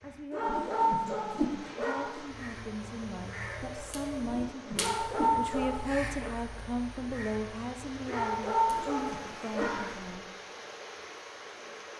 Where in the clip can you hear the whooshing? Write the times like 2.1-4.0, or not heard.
0.5-1.6, 4.2-5.4, 8.7-9.8.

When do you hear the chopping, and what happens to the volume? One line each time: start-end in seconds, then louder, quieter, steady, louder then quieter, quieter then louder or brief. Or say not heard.
not heard.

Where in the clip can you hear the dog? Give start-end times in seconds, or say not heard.
0.3-2.2, 4.8-6.3, 8.1-9.9.